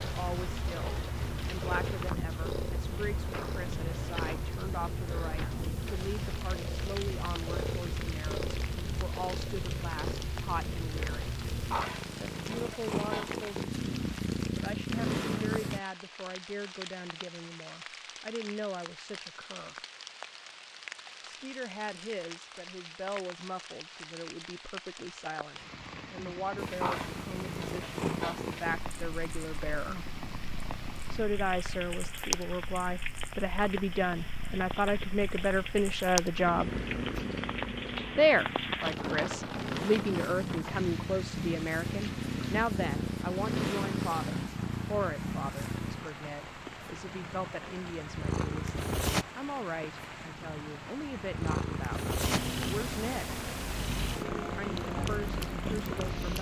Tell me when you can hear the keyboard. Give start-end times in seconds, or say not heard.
not heard.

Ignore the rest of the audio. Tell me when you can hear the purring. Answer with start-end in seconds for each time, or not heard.
0.0-15.8, 26.6-56.3.